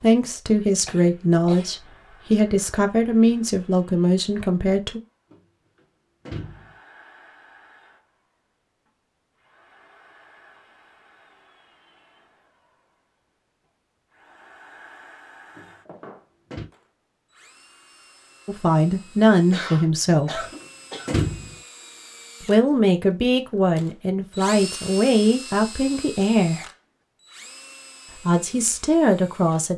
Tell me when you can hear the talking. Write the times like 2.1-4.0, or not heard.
0.0-5.0, 18.4-20.4, 22.4-26.6, 28.2-29.7.